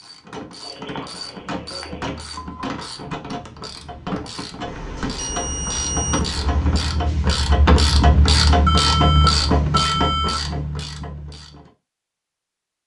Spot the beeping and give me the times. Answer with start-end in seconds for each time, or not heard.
0.6-2.6, 4.7-7.0, 8.7-10.3.